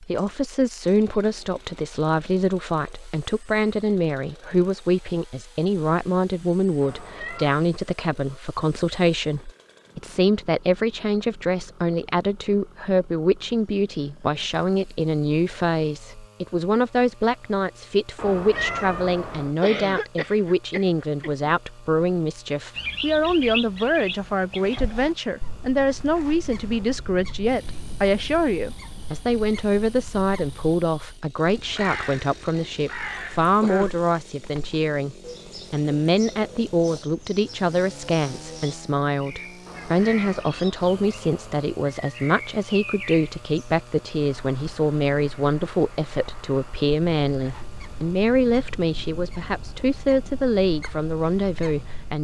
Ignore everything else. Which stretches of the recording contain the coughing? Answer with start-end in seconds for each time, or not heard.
19.6-21.5, 33.1-34.0.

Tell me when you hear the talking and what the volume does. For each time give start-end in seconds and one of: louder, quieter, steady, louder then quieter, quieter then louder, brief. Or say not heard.
0.0-52.2 steady.